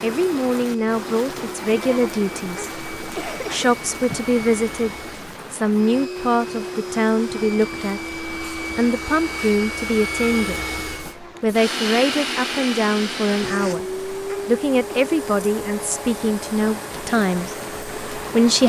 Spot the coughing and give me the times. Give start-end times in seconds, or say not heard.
2.5-3.7, 14.2-15.1.